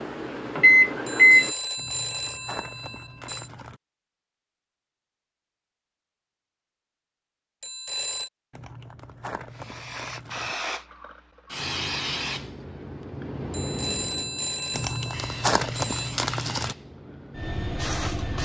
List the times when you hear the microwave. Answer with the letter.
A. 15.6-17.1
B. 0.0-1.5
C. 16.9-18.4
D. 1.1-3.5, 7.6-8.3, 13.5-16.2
B.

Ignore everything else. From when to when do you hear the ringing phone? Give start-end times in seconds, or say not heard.
1.1-3.5, 7.6-8.3, 13.5-16.2.